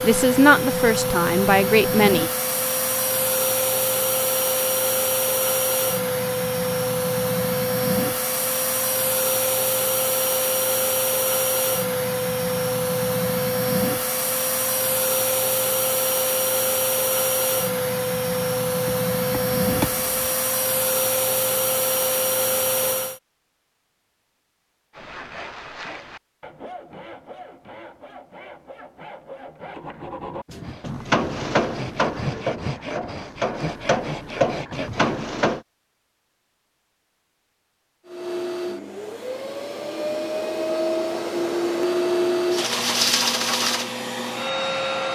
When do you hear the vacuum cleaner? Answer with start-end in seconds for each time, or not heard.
0.0-23.2, 38.0-45.1.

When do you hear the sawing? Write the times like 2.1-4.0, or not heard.
24.9-35.3.